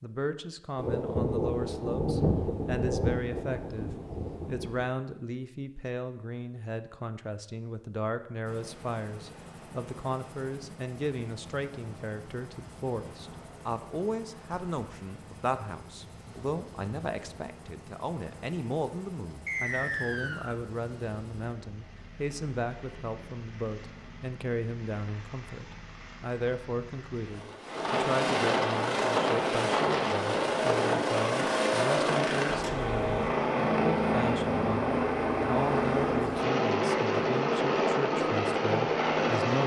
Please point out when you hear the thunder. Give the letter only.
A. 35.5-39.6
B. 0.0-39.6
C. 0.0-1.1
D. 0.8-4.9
D.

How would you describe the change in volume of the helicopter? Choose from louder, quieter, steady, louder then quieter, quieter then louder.
louder.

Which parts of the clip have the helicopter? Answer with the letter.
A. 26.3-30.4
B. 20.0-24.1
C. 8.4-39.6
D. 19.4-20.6
C.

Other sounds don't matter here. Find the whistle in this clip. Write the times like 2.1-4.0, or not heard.
19.4-20.6.